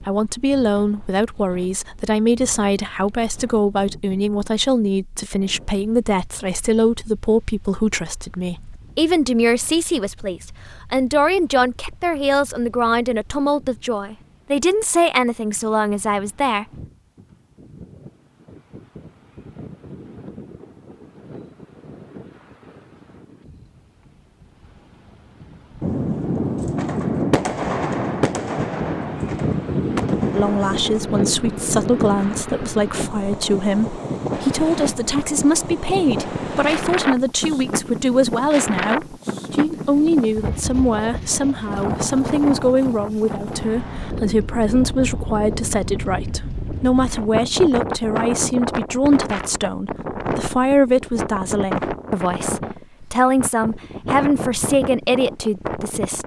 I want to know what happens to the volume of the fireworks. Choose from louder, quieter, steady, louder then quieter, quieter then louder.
quieter.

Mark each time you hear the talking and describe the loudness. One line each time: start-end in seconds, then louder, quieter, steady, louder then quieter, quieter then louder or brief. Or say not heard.
0.0-16.6 steady
30.4-56.2 steady.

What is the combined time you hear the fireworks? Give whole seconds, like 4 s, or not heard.
7 s.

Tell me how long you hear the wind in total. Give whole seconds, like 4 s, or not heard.
56 s.